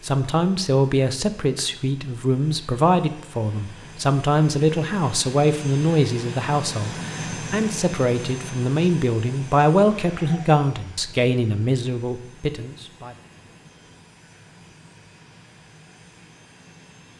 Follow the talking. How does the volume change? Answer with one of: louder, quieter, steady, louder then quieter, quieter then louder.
steady.